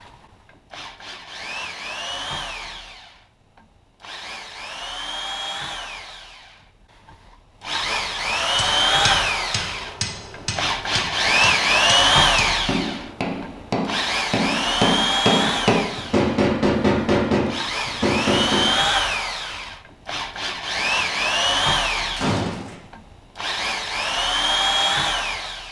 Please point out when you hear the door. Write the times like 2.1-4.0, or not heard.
22.1-22.8.